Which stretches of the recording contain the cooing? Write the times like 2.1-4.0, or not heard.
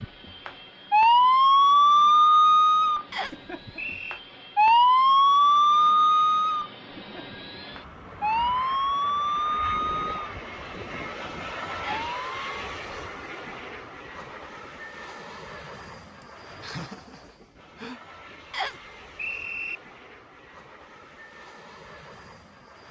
not heard.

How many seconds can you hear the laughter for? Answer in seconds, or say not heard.
2 s.